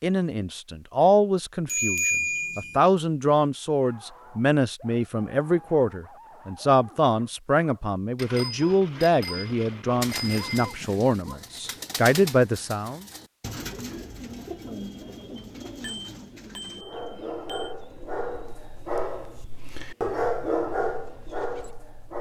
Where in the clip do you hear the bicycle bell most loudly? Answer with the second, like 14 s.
2 s.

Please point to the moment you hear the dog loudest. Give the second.
20 s.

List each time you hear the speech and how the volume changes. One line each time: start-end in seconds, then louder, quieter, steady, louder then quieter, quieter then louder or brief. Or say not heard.
0.0-13.1 steady.